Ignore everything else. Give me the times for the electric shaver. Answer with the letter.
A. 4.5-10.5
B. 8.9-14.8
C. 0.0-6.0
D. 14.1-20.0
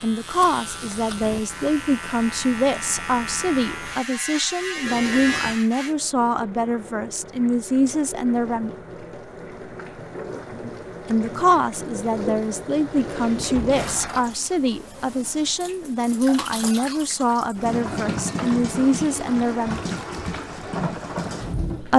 C.